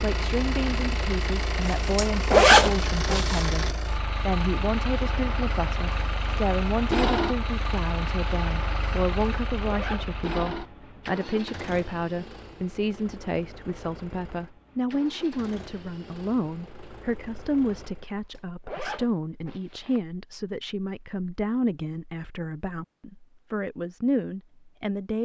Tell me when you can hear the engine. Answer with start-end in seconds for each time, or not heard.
0.0-18.1.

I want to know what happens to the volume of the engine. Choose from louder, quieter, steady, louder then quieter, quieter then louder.
quieter.